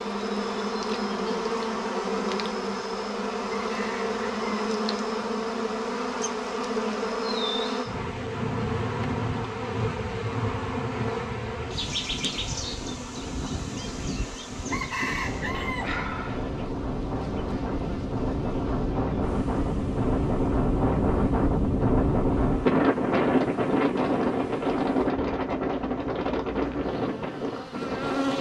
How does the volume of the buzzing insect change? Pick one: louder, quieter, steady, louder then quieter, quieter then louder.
quieter.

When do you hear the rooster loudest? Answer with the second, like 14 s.
15 s.